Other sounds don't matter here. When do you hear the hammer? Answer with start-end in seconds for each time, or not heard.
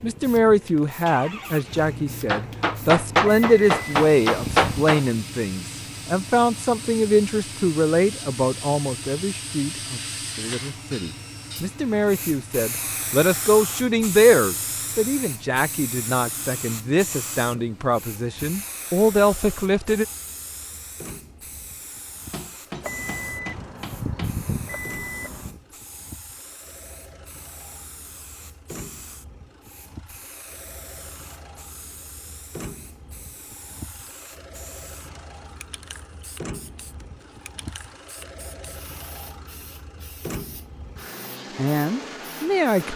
2.2-5.0, 22.3-24.4.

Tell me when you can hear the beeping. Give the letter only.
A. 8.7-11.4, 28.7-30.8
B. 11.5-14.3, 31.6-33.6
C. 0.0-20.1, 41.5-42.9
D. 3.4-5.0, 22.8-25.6
D.